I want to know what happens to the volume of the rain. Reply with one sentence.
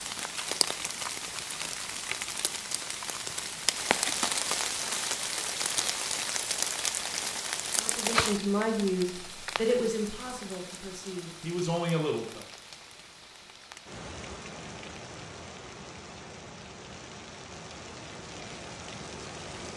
The volume of the rain goes down.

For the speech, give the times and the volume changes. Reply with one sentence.
You can hear the speech from 7.8 to 12.4 s, getting quieter then louder.